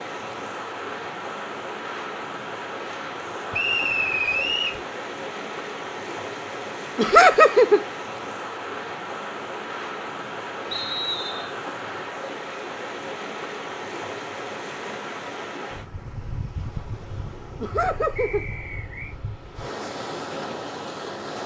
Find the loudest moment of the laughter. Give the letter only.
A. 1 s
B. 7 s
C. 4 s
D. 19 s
B.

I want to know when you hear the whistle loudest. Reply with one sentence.
The volume of the whistle peaks at 4 seconds.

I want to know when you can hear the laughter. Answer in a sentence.
The laughter can be heard from 7.0 to 7.8 s and from 17.6 to 18.4 s.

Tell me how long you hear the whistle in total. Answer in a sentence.
The whistle can be heard for 3 seconds in total.